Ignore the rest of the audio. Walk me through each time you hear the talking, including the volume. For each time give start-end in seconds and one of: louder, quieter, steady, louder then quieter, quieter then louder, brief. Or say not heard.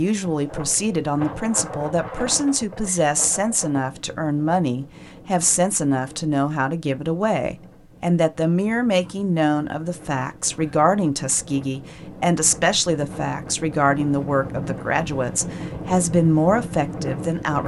0.0-17.6 steady.